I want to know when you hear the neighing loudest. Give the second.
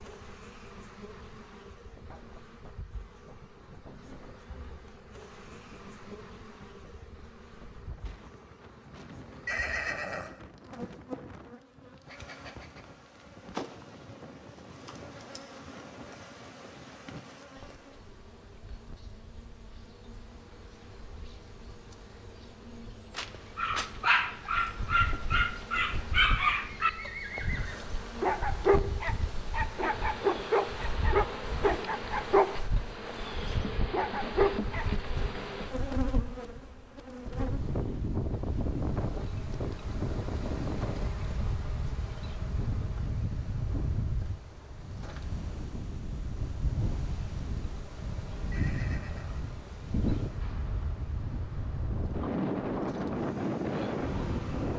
10 s.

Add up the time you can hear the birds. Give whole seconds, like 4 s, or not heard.
not heard.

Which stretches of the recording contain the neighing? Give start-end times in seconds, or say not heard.
9.4-10.3, 26.9-27.9, 48.5-49.6.